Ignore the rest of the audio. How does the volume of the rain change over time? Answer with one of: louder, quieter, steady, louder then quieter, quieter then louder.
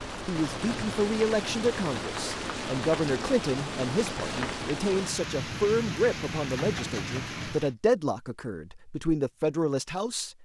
steady.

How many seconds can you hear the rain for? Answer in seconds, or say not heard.
8 s.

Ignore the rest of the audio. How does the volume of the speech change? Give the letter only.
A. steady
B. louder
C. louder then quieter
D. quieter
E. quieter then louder
A.